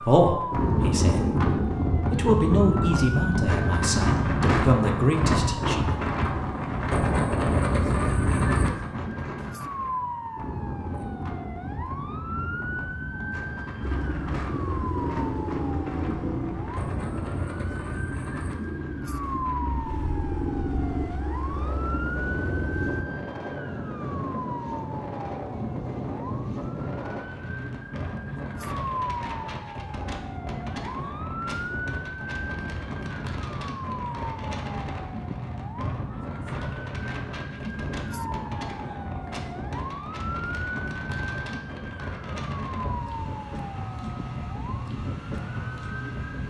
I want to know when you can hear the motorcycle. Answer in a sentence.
You can hear the motorcycle from 13.8 to 23.1 s.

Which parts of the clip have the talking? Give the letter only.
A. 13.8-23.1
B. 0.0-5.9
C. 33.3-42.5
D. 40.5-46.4
B.